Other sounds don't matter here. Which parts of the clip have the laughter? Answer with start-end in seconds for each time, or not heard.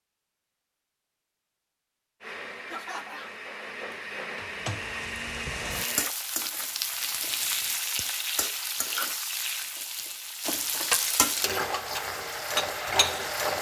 2.6-3.4.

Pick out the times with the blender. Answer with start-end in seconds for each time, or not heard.
2.2-6.1.